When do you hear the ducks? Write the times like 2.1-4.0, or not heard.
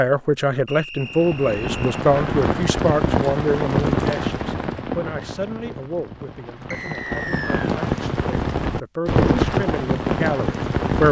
not heard.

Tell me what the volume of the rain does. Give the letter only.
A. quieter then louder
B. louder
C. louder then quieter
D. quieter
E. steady
A.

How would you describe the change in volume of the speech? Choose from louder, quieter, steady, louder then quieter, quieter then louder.
quieter then louder.